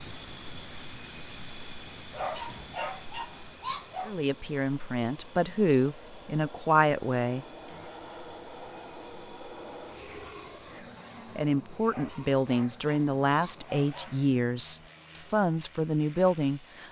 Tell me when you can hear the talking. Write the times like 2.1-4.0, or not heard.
4.0-7.5, 11.3-16.8.